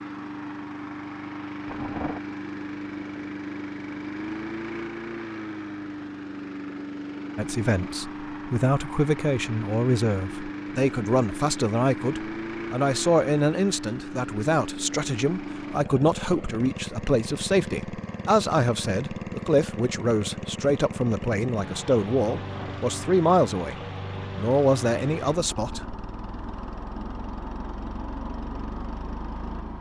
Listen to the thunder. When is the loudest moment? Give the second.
2 s.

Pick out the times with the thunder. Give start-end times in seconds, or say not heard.
1.6-2.2, 22.4-22.8.